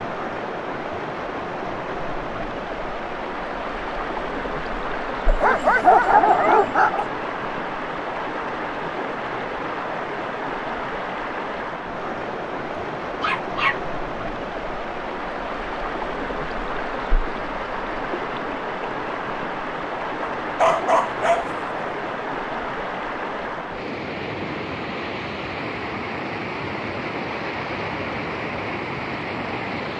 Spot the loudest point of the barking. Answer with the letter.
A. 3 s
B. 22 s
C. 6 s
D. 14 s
C.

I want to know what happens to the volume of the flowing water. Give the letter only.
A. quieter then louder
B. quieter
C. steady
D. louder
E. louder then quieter
C.